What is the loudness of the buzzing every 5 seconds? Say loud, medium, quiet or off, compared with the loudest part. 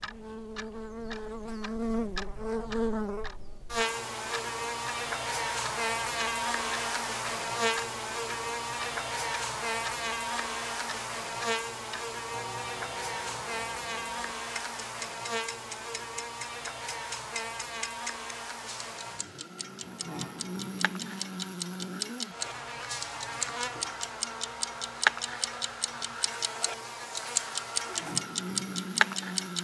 loud, loud, loud, medium, medium, medium.